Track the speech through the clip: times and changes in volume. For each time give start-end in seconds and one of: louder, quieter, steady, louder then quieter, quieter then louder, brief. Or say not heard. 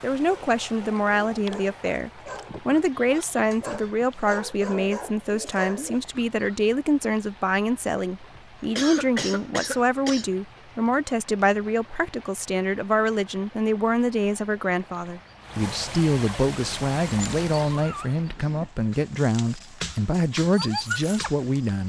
0.0-21.8 steady.